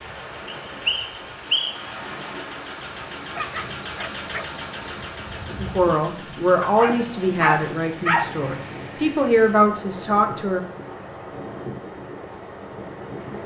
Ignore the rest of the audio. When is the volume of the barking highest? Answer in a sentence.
The volume of the barking peaks at 8 seconds.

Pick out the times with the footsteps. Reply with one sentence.
The footsteps can't be heard in this clip.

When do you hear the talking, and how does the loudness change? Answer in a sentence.
You can hear the talking from 5.6 to 10.6 s, getting quieter then louder.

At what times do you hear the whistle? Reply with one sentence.
You can hear the whistle from 0.5 to 1.9 s.